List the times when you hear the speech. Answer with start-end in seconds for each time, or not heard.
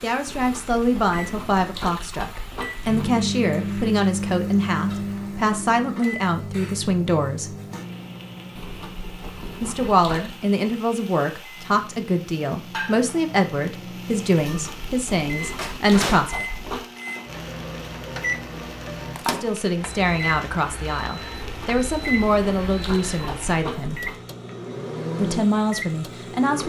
0.0-7.5, 9.6-16.4, 19.3-24.0, 25.1-26.6.